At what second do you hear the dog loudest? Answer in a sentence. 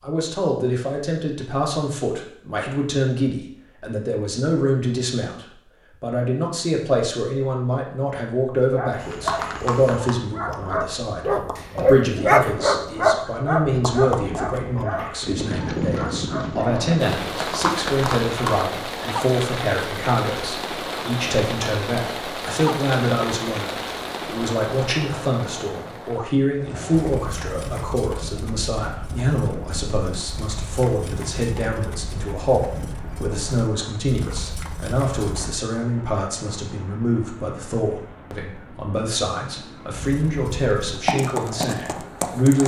The volume of the dog peaks at 12 seconds.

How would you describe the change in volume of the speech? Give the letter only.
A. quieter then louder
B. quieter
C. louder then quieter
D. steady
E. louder
D.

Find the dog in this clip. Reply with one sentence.
You can hear the dog from 8.7 to 16.9 s.